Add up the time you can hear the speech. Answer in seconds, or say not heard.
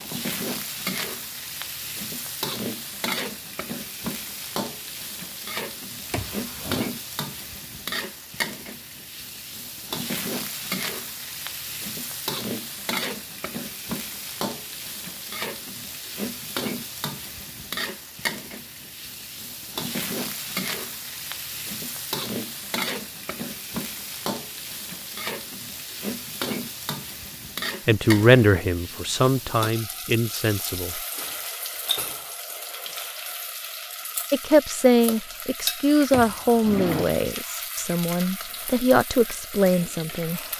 9 s.